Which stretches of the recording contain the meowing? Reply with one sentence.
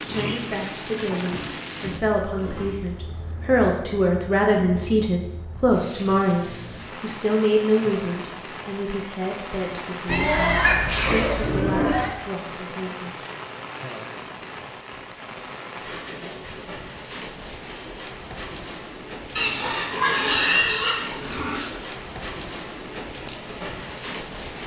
You can hear the meowing from 10.1 to 11.6 s.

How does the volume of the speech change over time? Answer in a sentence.
The loudness of the speech goes up, then down.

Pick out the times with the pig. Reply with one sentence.
The pig can be heard from 0.0 to 2.9 s, from 10.1 to 12.1 s and from 19.4 to 21.7 s.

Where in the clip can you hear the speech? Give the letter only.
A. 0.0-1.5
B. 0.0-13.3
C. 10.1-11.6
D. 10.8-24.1
B.